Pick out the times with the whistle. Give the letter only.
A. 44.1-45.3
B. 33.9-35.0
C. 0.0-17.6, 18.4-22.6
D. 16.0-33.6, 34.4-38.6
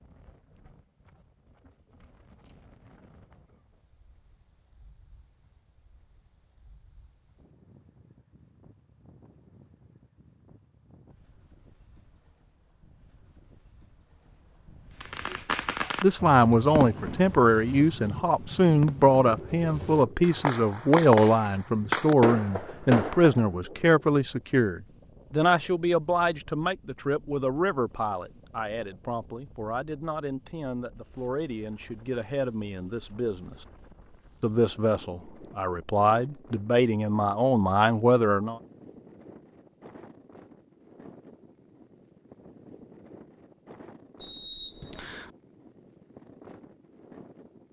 A.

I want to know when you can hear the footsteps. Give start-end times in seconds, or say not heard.
not heard.